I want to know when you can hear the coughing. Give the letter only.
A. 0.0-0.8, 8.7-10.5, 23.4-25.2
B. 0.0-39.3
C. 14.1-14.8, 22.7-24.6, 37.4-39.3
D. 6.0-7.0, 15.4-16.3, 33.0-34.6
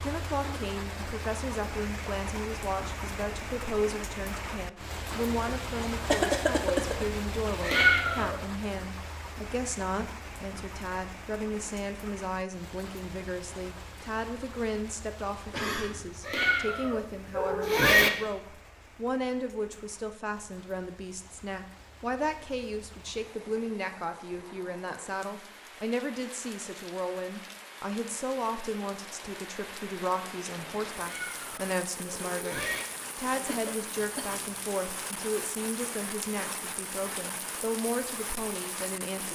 D.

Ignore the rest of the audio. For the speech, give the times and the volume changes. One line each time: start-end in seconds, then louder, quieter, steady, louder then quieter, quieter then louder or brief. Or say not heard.
0.0-39.3 steady.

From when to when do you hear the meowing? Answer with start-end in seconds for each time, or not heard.
7.6-8.3, 16.2-18.1, 30.9-32.9.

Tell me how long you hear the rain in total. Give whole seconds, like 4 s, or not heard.
39 s.